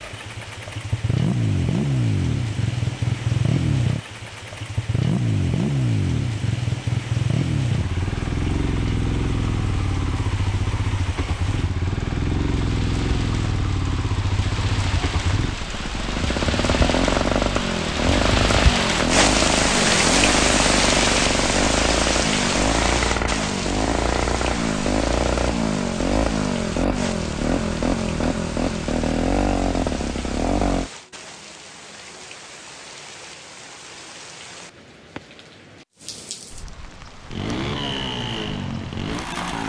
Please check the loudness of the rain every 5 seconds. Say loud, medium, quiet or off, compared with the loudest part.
quiet, quiet, quiet, loud, loud, quiet, quiet, quiet.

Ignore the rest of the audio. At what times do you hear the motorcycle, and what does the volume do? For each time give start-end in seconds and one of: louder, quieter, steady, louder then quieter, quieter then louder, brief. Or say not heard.
0.0-30.9 steady
37.3-39.6 brief.